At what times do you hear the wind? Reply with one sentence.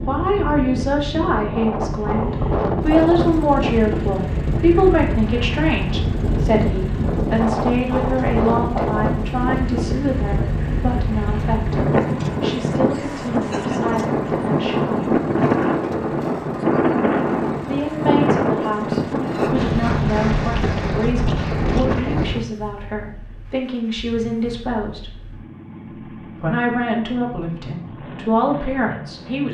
You can hear the wind from 0.0 to 22.4 s.